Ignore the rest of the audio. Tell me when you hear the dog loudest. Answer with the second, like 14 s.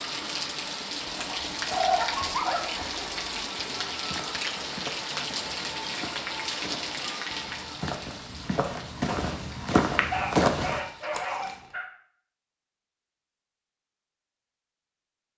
2 s.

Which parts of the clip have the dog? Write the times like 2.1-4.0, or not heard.
1.2-2.6, 10.1-11.8.